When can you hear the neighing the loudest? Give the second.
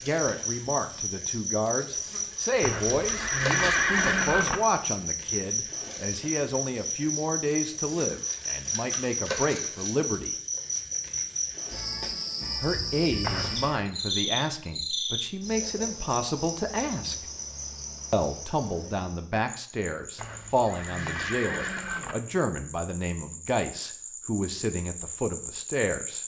4 s.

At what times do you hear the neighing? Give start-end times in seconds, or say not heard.
2.6-4.6, 13.2-13.8, 20.1-22.1.